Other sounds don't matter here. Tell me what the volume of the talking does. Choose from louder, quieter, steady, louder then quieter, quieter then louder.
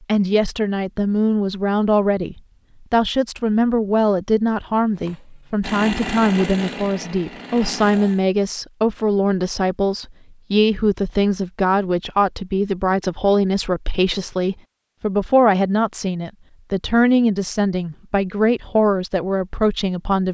steady.